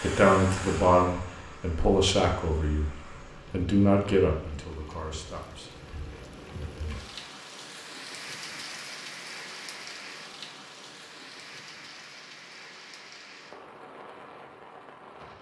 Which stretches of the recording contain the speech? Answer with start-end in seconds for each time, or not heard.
0.0-5.8.